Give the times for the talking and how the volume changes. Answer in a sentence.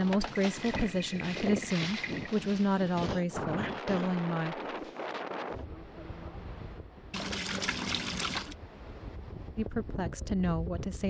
You can hear the talking from 0.0 to 4.5 s, at a steady volume; and briefly from 9.6 to 11.0 s.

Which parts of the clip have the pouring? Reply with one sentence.
The pouring can be heard from 0.3 to 2.3 s and from 7.1 to 8.6 s.